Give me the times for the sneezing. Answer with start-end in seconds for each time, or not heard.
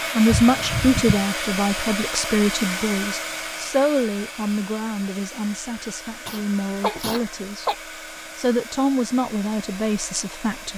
0.2-1.2, 6.2-7.8.